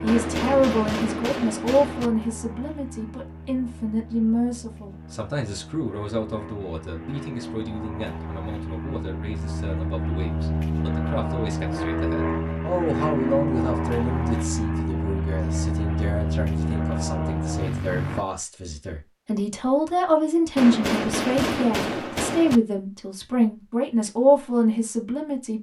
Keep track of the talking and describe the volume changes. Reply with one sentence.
The volume of the talking goes down, then up.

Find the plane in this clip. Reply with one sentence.
You can hear the plane from 0.0 to 18.2 s.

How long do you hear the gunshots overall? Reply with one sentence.
The gunshots can be heard for 4 seconds in total.